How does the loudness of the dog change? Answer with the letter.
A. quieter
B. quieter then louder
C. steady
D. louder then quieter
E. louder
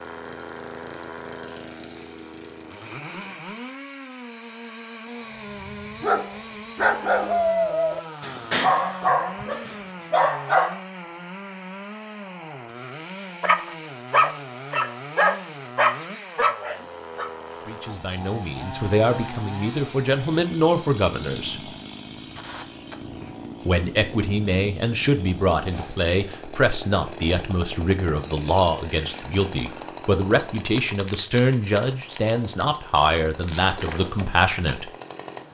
C.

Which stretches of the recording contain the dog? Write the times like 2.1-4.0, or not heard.
5.6-10.8, 13.4-17.3.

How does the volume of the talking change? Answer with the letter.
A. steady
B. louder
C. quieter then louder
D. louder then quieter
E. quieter
A.